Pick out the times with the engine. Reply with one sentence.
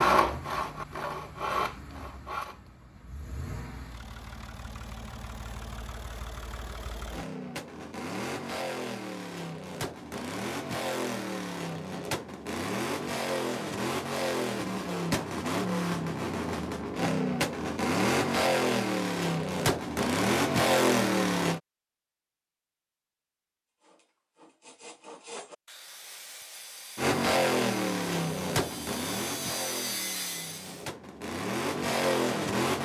You can hear the engine from 0.1 to 21.6 s and from 26.9 to 32.8 s.